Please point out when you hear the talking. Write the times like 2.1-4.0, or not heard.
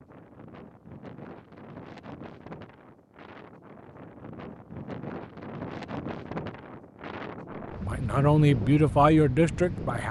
7.8-10.0.